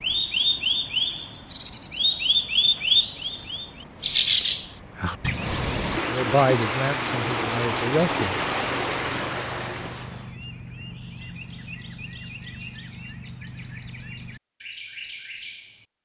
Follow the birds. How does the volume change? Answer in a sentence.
The loudness of the birds goes down.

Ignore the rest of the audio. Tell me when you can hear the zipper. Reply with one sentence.
The zipper can't be heard in this clip.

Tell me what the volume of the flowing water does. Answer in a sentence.
The volume of the flowing water goes up.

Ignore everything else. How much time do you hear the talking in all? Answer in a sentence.
The talking can be heard for 2 seconds in total.